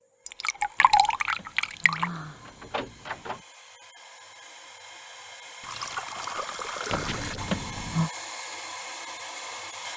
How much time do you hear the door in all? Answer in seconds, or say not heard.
4 s.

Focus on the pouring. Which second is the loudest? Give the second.
1 s.